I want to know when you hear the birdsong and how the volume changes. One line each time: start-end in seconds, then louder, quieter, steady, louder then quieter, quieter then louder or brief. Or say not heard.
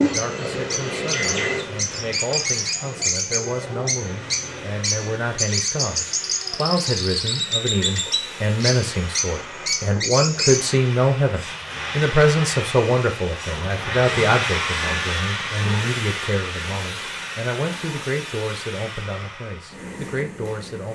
0.0-10.8 steady.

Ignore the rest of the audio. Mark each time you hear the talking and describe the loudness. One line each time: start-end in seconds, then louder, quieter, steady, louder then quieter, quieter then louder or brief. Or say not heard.
0.0-20.9 louder then quieter.